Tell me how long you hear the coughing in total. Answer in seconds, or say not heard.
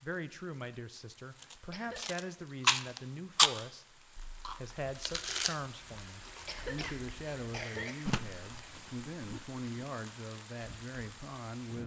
2 s.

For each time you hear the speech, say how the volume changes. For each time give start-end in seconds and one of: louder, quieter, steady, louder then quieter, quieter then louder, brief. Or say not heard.
0.0-11.8 steady.